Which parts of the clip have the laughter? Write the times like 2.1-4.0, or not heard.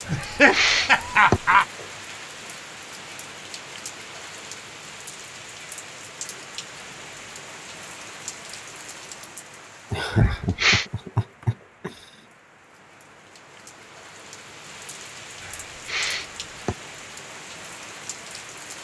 0.1-1.6, 9.9-12.1.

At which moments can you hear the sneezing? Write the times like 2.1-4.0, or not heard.
0.1-1.4, 10.1-10.8, 15.4-16.8.